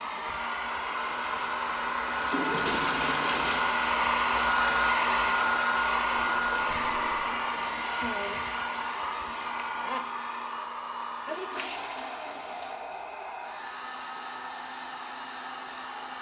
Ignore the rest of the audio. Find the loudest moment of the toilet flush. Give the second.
3 s.